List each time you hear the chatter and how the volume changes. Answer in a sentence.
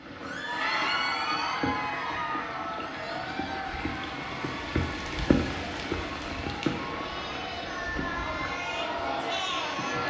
You can hear the chatter from 0.1 to 10.0 s, getting quieter then louder.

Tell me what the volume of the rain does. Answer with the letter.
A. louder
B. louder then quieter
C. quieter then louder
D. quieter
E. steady
B.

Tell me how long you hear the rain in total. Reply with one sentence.
The rain can be heard for 10 seconds in total.